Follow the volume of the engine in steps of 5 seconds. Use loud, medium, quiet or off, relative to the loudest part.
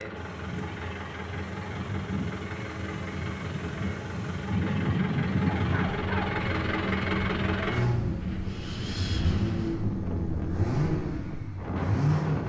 medium, loud, loud.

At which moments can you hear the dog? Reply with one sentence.
The dog can be heard from 5.5 to 6.4 s.